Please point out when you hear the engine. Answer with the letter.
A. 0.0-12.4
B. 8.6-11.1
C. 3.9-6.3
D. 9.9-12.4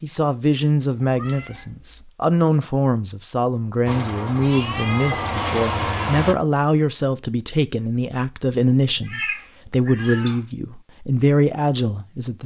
C.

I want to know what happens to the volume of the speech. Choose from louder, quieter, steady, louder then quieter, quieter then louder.
steady.